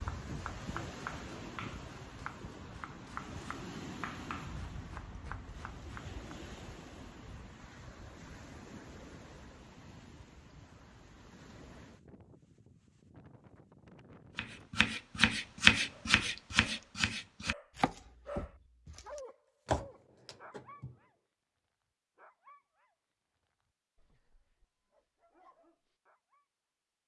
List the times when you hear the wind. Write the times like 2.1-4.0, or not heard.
0.0-14.9.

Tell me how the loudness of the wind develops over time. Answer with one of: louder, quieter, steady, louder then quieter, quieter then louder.
quieter.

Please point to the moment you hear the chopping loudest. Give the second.
16 s.